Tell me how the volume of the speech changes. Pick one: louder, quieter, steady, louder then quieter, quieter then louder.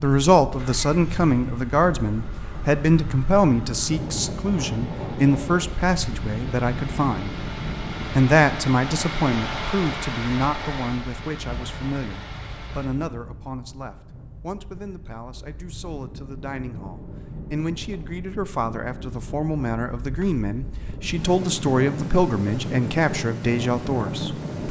quieter then louder.